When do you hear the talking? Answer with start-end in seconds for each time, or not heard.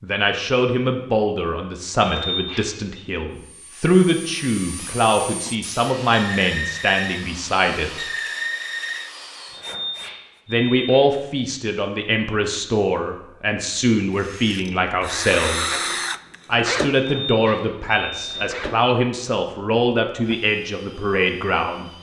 0.0-8.1, 10.4-21.9.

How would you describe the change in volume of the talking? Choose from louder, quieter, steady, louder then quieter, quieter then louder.
steady.